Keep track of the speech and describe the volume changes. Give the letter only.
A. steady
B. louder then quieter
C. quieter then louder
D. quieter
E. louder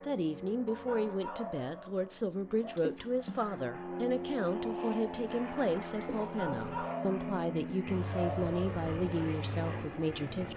A.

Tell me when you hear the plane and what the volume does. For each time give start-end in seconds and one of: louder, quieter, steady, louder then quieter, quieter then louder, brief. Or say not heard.
0.0-10.5 louder.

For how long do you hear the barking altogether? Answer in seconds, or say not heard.
5 s.